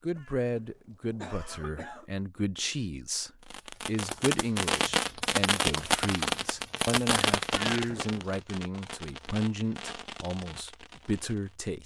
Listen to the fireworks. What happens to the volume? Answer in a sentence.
The volume of the fireworks goes down.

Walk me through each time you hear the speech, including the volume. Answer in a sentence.
The speech can be heard from 0.0 to 11.8 s, at a steady volume.